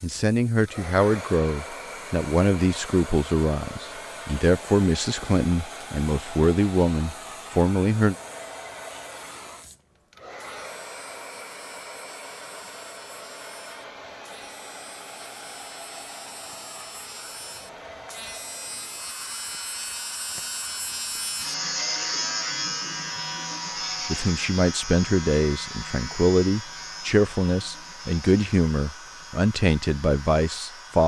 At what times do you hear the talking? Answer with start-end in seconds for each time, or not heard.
0.0-8.2, 24.1-31.0.